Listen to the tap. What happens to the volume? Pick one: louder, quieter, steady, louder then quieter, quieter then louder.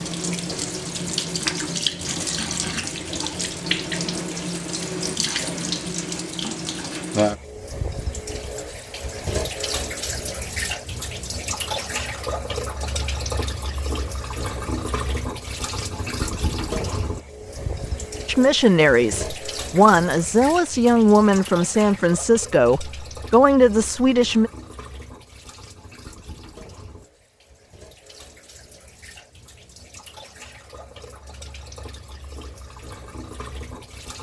quieter.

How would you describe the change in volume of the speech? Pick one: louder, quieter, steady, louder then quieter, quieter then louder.
steady.